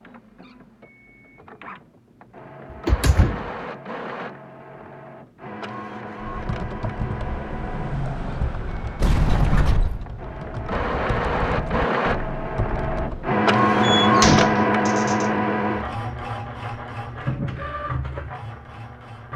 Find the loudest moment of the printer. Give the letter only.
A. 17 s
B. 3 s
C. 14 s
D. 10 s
C.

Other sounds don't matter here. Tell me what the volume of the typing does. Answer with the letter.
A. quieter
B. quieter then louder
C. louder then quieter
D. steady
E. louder
B.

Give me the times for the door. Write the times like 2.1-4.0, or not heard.
2.7-3.5, 9.0-10.1, 13.8-15.2.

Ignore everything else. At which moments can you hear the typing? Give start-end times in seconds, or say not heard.
6.2-13.3.